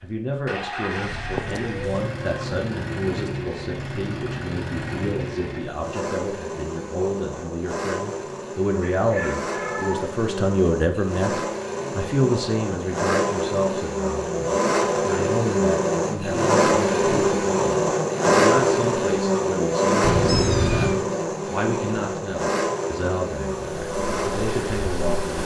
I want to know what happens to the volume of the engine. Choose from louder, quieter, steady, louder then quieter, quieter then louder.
louder then quieter.